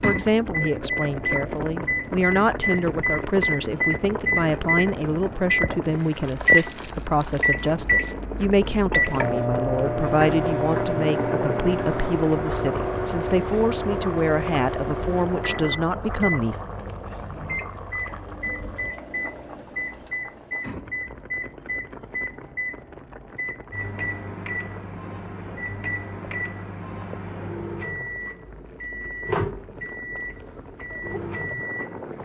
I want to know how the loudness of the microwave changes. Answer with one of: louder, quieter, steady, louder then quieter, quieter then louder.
quieter.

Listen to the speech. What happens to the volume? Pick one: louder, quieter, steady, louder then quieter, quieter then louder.
steady.